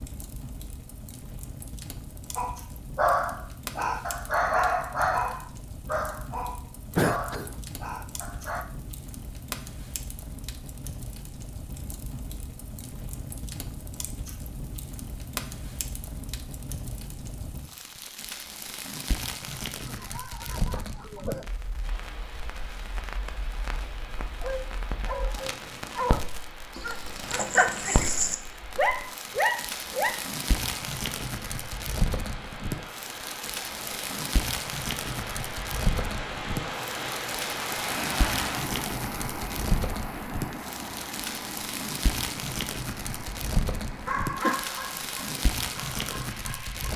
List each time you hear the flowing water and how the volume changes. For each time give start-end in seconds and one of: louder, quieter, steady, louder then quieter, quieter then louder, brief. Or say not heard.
21.8-46.9 louder then quieter.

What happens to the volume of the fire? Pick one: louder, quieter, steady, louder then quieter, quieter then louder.
louder.